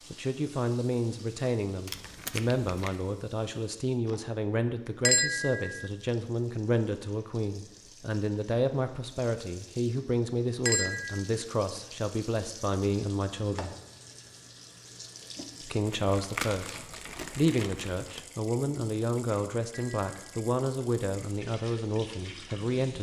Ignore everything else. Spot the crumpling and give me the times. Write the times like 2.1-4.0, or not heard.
1.9-3.0, 15.8-18.2.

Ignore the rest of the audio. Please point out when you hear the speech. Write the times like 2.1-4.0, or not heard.
0.1-13.8, 15.6-22.9.